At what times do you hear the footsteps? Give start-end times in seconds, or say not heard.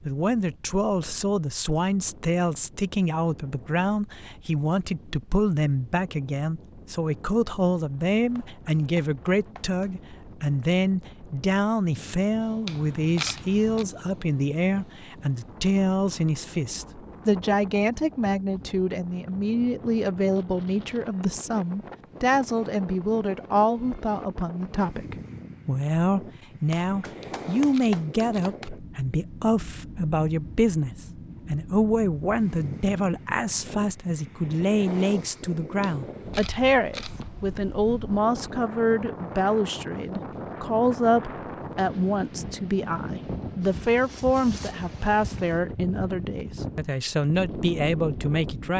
not heard.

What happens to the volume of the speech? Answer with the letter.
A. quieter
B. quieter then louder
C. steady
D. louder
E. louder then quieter
C.